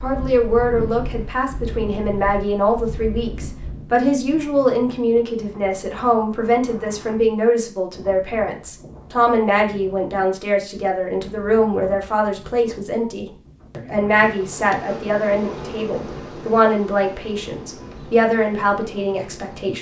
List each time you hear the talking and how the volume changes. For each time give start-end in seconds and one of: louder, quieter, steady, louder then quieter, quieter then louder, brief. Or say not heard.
0.0-19.7 steady.